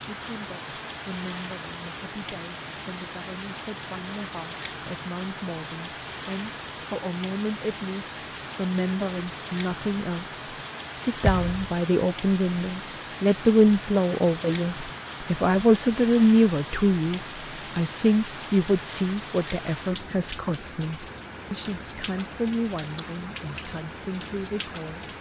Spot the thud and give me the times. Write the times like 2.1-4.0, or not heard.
11.2-11.8.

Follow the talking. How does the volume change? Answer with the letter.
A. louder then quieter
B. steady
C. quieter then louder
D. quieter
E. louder
A.